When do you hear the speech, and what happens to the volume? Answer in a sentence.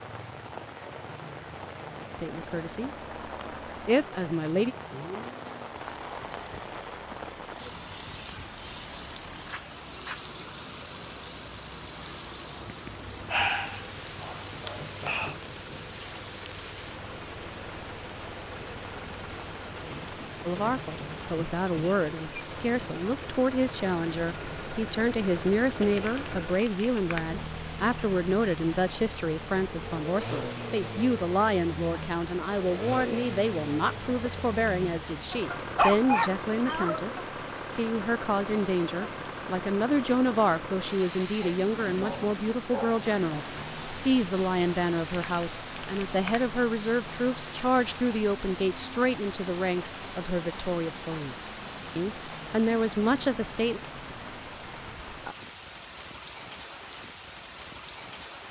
You can hear the speech briefly from 2.2 to 2.9 s; briefly from 3.9 to 4.8 s; and from 20.4 to 53.8 s, at a steady volume.